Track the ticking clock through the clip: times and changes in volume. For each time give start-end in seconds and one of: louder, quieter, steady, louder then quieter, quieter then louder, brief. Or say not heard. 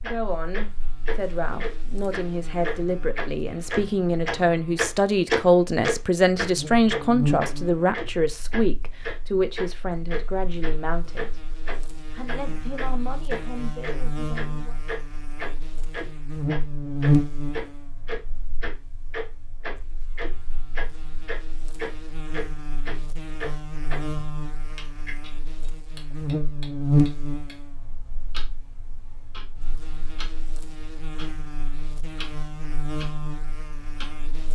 0.0-34.3 quieter.